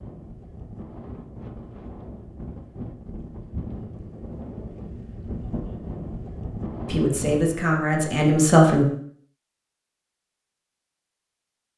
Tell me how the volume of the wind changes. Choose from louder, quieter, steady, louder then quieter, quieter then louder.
louder.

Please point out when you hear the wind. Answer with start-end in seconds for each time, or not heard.
0.0-7.6.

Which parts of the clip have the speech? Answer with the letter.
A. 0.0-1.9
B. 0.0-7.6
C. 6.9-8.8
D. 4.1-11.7
C.